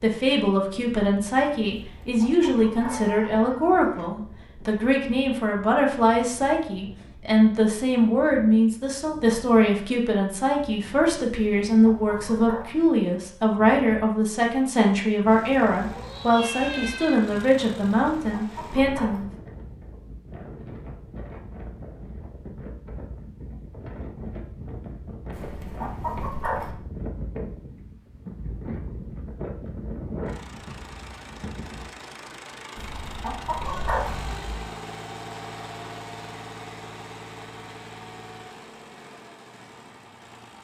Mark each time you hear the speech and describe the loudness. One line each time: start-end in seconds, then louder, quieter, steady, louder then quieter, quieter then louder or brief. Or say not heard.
0.0-19.3 steady.